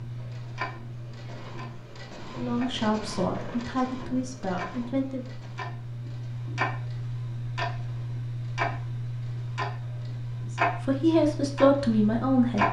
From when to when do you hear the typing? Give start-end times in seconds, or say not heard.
not heard.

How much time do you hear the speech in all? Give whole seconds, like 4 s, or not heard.
5 s.